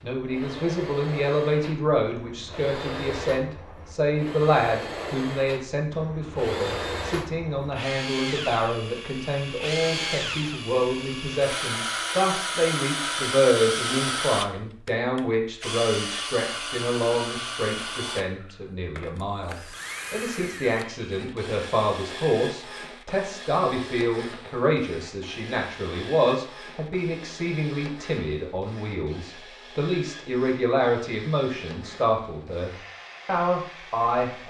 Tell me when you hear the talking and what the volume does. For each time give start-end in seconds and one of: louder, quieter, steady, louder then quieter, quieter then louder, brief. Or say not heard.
0.0-34.4 steady.